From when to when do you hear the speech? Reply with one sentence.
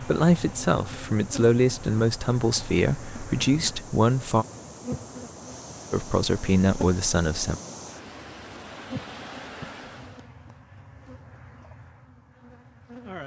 You can hear the speech from 0.0 to 4.5 s and from 5.9 to 7.6 s.